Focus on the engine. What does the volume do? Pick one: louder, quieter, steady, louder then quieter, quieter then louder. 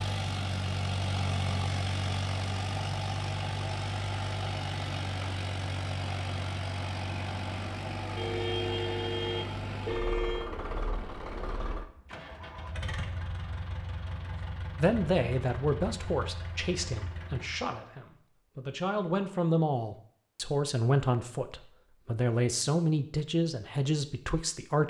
quieter.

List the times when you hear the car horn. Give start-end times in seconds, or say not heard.
8.2-10.5.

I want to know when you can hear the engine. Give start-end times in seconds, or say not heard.
0.0-17.8.